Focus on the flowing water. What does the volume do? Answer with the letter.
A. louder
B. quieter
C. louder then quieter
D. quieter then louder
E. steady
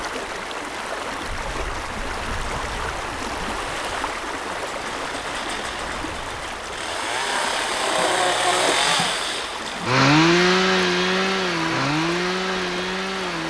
E.